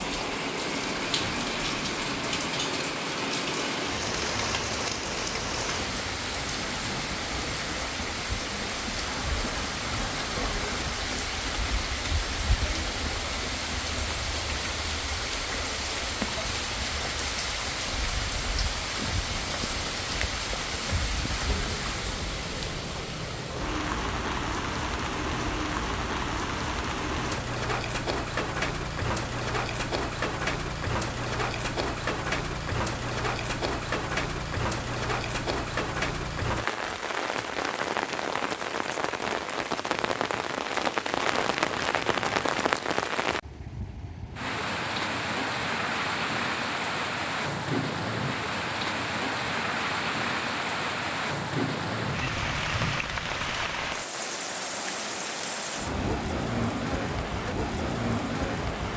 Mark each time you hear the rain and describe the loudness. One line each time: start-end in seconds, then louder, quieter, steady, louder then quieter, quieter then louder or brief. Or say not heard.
0.0-58.9 steady.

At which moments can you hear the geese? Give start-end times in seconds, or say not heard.
9.1-10.9, 41.3-42.9.